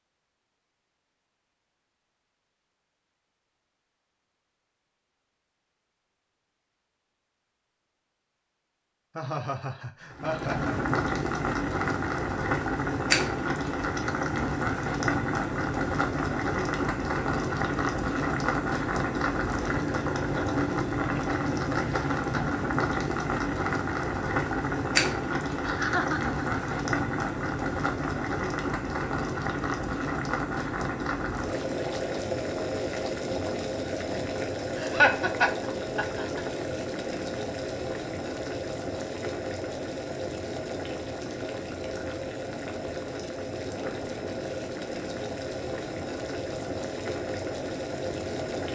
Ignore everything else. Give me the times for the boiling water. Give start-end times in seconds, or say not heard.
10.1-48.6.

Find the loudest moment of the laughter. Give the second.
35 s.